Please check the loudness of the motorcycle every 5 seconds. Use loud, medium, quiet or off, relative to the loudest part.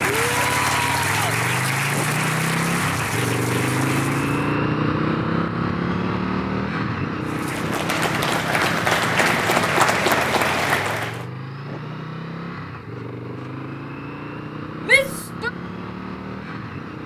loud, loud, medium, medium.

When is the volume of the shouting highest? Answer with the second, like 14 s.
15 s.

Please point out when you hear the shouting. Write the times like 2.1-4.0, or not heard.
0.1-1.4, 14.8-15.5.